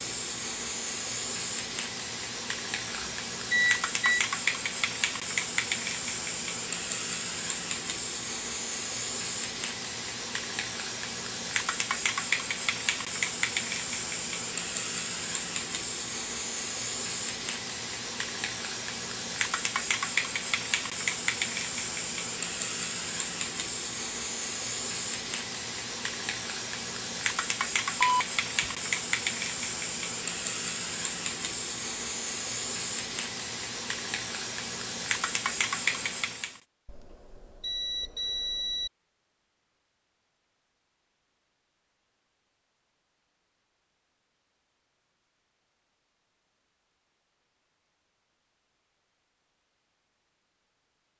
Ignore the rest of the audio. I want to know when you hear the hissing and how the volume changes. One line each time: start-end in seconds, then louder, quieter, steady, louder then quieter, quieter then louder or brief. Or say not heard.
0.0-36.6 steady.